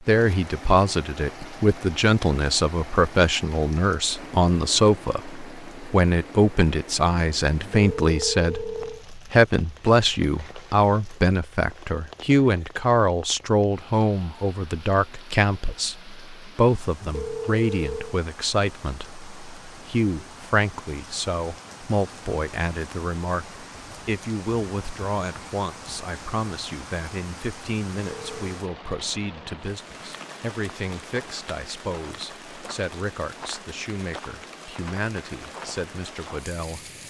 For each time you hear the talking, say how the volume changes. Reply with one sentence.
The talking can be heard from 0.1 to 36.9 s, getting quieter.